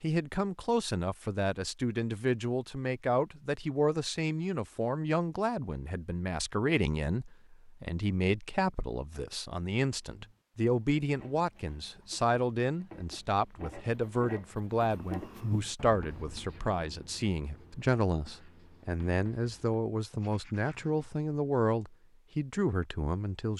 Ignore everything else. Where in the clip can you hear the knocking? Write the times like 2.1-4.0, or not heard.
not heard.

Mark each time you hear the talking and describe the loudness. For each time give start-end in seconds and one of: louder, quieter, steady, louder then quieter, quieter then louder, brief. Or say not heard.
0.0-23.5 steady.